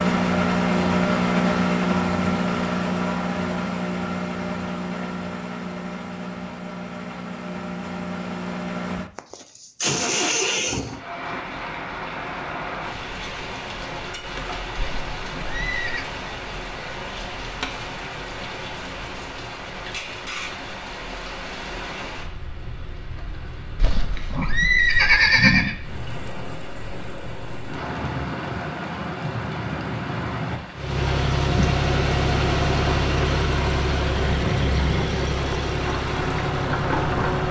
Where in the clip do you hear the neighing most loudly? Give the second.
25 s.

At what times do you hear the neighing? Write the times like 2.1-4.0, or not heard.
14.8-16.1, 23.8-25.8.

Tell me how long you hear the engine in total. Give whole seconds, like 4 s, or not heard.
18 s.